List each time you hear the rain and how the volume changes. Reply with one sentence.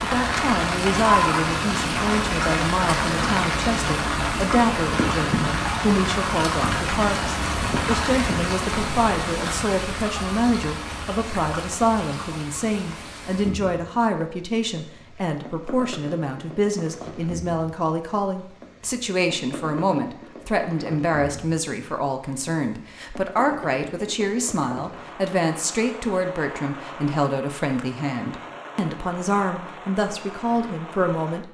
You can hear the rain from 0.0 to 31.4 s, getting quieter.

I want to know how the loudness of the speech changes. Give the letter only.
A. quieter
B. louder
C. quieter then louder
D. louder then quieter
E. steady
E.